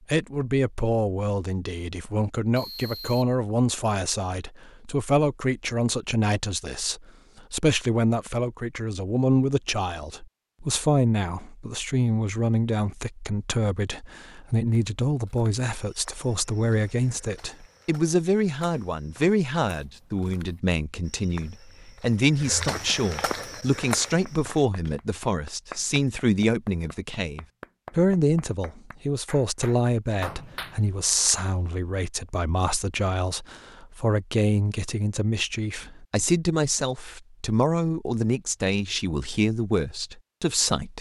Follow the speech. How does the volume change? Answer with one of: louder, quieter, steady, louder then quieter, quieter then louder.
steady.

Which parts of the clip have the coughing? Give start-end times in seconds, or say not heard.
not heard.